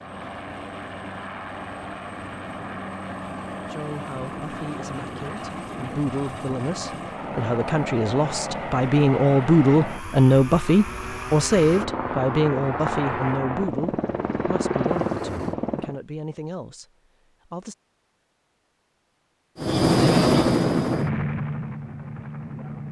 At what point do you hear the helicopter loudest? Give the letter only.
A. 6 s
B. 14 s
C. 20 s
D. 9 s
C.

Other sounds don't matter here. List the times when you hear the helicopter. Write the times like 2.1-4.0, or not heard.
0.0-15.9, 19.6-22.8.